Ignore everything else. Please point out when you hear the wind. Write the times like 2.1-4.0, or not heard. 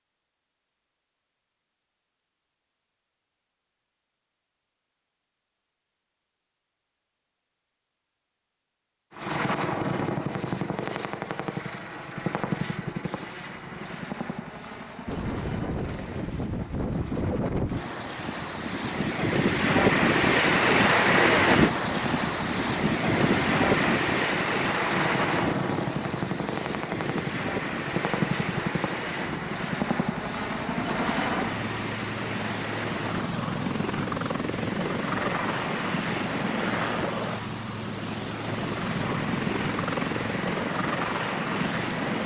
15.1-42.2.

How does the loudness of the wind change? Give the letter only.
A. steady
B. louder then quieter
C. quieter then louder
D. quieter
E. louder
D.